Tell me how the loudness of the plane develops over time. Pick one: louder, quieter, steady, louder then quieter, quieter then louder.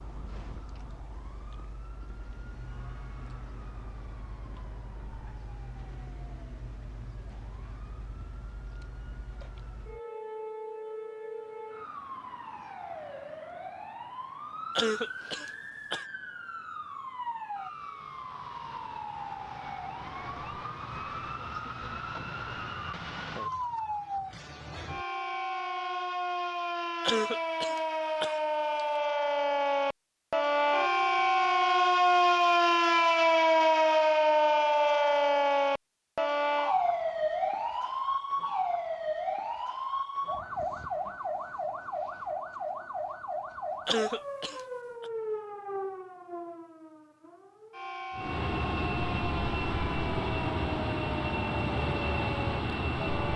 steady.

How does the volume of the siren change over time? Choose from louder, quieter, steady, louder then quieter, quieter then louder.
louder then quieter.